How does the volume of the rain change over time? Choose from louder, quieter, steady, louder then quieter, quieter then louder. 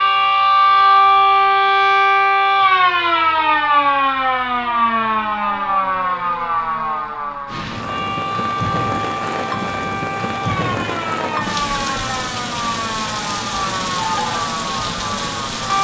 steady.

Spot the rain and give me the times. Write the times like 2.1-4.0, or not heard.
7.5-15.7.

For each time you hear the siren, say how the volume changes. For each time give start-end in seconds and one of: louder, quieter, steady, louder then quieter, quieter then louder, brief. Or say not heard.
0.0-15.7 quieter.